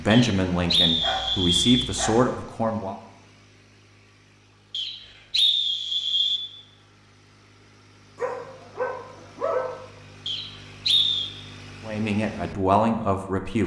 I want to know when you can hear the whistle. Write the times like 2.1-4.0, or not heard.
0.1-1.9, 4.7-6.4, 10.2-11.3.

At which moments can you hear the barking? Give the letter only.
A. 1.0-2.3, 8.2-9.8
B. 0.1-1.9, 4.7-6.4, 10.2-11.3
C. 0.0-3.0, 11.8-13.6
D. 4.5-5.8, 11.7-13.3
A.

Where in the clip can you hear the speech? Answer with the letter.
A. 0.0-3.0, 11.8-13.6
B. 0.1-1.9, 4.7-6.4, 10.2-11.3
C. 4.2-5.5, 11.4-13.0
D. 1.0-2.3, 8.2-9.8
A.